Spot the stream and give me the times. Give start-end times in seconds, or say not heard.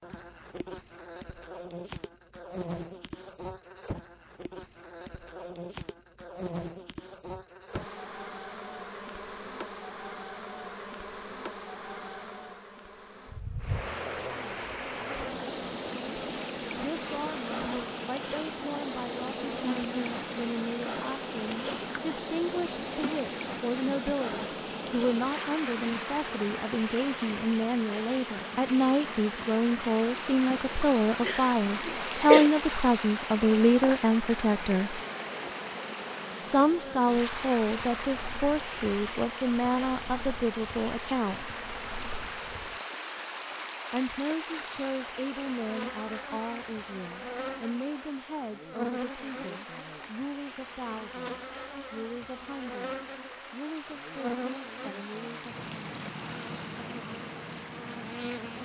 13.6-58.6.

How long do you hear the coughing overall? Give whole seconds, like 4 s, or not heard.
2 s.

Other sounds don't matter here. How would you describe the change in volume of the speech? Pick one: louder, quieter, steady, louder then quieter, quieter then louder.
louder then quieter.